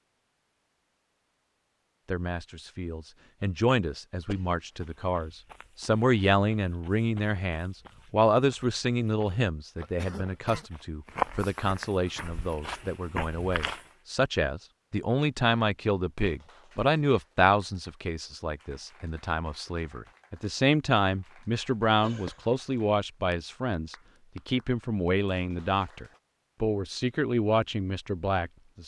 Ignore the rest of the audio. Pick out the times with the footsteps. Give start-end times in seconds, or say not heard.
4.7-13.9.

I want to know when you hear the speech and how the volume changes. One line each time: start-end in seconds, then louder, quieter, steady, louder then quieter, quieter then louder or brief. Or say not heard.
2.0-28.8 steady.